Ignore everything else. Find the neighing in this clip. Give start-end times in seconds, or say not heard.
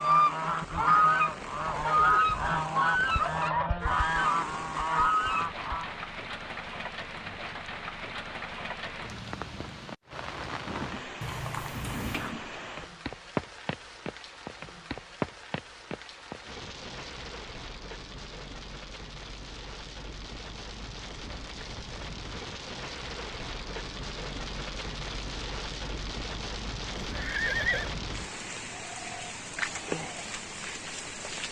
0.8-2.4, 11.2-12.3, 26.9-27.9.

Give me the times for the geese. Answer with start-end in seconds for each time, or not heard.
0.0-6.0.